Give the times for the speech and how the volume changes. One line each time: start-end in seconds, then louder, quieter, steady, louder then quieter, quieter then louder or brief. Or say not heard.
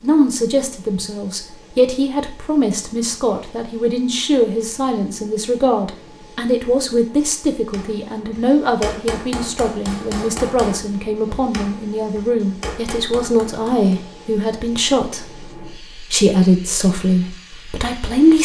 0.0-18.3 steady.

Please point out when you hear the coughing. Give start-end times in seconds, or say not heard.
not heard.